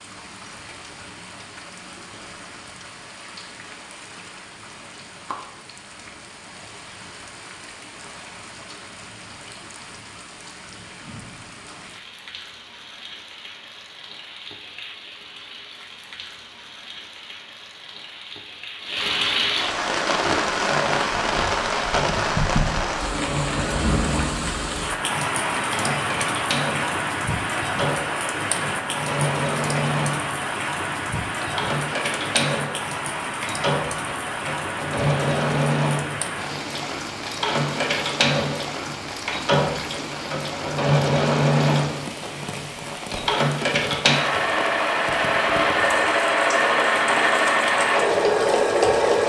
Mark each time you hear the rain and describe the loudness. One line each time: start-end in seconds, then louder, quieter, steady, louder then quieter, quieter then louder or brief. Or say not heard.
0.0-49.2 louder then quieter.